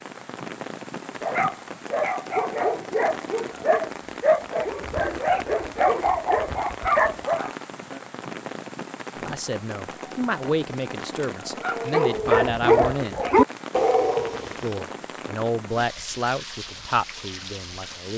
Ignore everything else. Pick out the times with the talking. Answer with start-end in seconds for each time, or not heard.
9.2-13.2, 14.6-18.1.